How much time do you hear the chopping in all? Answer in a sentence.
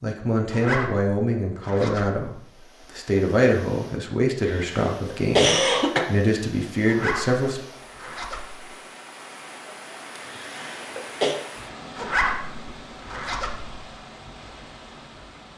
You can't hear the chopping here.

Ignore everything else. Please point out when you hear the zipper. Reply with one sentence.
You can hear the zipper from 0.5 to 2.2 s, from 6.8 to 8.7 s and from 11.9 to 13.8 s.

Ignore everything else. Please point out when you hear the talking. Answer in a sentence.
The talking can be heard from 0.0 to 7.6 s.